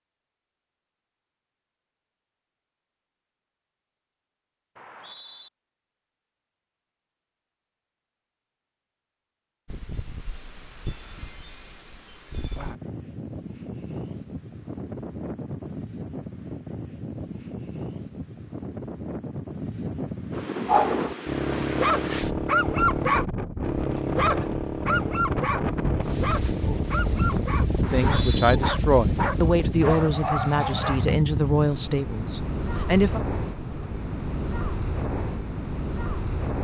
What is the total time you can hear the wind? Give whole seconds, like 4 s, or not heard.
27 s.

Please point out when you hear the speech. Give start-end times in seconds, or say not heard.
27.9-33.2.